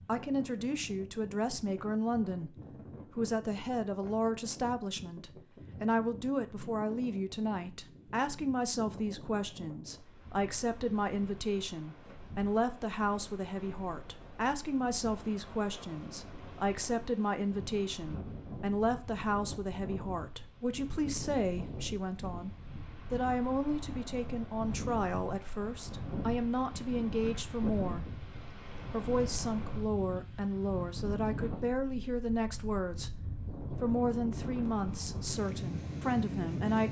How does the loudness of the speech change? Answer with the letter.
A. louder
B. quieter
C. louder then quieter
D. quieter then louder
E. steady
E.